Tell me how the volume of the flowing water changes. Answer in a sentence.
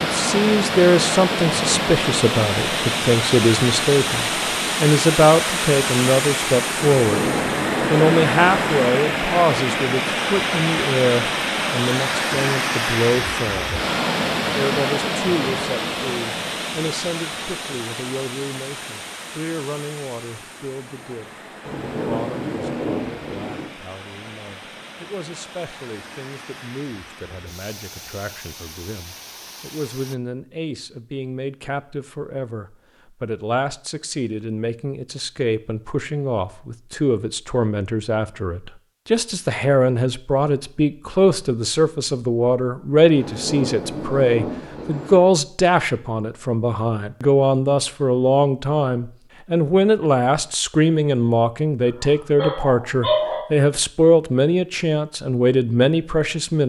The volume of the flowing water goes down.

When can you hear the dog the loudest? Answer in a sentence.
The volume of the dog peaks at 53 seconds.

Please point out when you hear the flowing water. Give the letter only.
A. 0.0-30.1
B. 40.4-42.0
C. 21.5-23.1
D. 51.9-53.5
A.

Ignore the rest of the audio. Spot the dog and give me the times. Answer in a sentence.
The dog can be heard from 51.9 to 53.5 s.